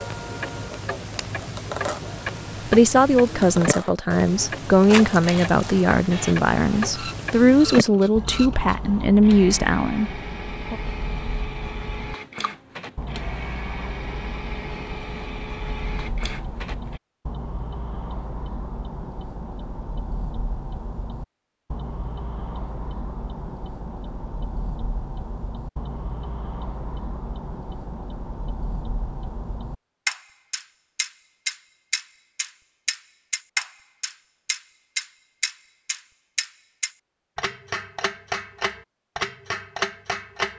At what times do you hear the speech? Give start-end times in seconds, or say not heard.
2.7-10.8.